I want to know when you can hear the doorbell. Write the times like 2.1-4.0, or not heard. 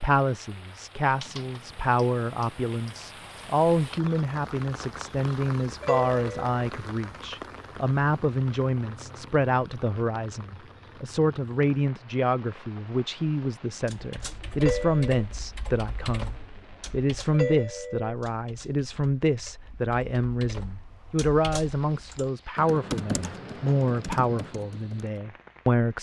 5.8-6.5, 14.6-15.2, 17.3-18.1.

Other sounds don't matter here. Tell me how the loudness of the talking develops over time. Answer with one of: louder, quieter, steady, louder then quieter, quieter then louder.
steady.